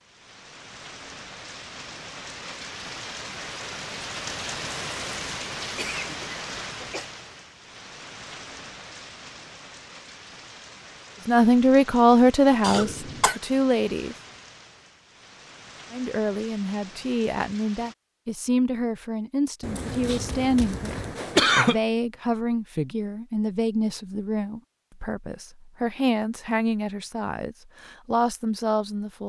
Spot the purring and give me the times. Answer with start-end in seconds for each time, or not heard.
not heard.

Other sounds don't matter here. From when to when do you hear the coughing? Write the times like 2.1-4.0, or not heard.
5.8-7.1, 12.6-13.4, 19.6-21.8.